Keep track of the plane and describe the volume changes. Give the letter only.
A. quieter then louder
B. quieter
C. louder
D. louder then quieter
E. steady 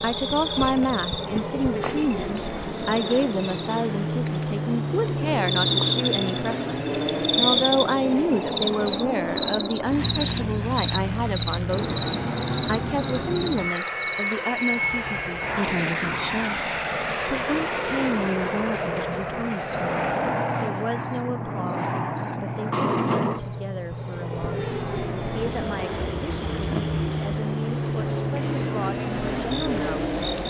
E.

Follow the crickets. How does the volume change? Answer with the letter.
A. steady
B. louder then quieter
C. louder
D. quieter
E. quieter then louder
B.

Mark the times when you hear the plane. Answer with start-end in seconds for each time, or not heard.
0.0-30.4.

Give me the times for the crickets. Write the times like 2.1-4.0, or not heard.
0.0-30.4.